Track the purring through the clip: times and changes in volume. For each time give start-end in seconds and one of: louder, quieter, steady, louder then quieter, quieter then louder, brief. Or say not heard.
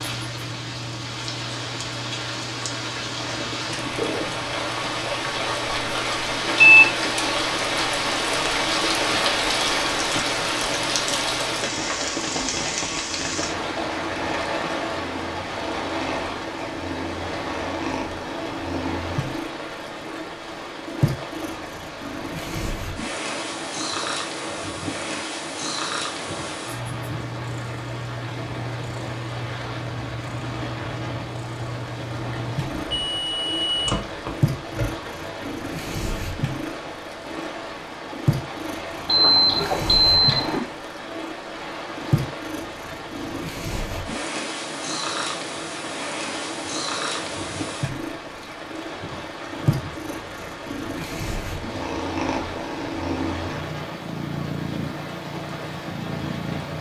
0.0-56.7 louder.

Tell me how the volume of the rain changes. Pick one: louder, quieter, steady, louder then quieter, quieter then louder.
quieter.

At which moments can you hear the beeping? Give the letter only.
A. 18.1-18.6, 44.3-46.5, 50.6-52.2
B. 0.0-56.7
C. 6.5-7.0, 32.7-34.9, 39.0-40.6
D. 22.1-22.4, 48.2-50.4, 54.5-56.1
C.